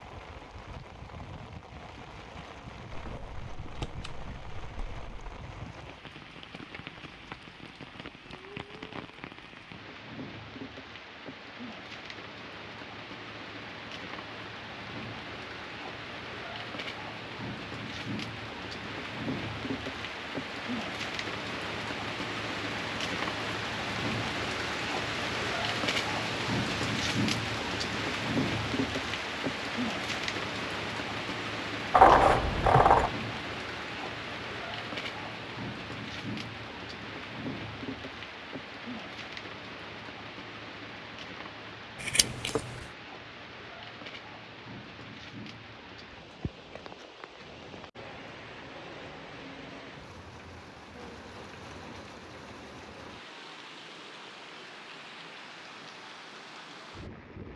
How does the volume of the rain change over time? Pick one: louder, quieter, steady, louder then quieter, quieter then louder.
louder then quieter.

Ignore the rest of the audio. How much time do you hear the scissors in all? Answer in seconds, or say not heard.
4 s.